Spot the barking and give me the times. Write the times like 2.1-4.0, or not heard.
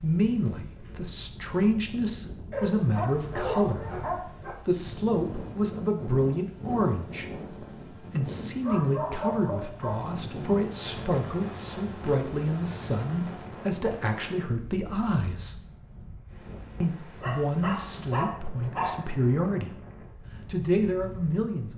2.5-4.5, 8.6-10.1, 17.2-19.1.